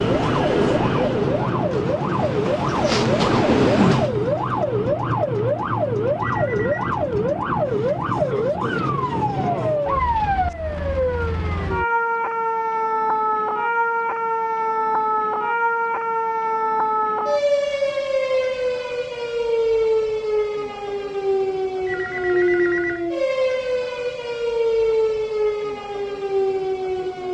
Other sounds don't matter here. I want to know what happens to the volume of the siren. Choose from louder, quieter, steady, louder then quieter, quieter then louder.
steady.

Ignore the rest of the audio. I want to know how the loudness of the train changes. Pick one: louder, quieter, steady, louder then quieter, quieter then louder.
quieter then louder.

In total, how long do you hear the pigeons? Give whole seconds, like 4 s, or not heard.
not heard.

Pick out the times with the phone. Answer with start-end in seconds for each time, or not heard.
6.2-6.9, 21.9-23.1.